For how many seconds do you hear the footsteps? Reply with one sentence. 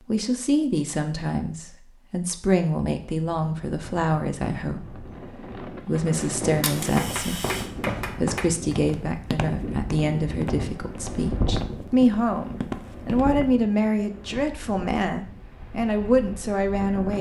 You can hear the footsteps for 7 seconds altogether.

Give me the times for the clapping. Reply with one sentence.
You can hear the clapping from 7.0 to 8.8 s.